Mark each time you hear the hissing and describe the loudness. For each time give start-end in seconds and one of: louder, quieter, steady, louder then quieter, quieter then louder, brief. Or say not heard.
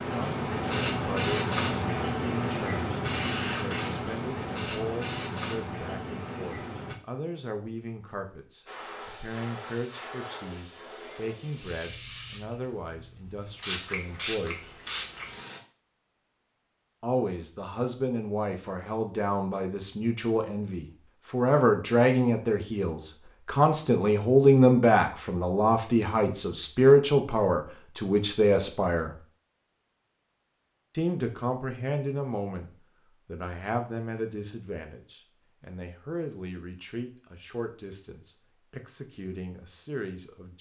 0.0-7.0 quieter
8.7-15.6 louder.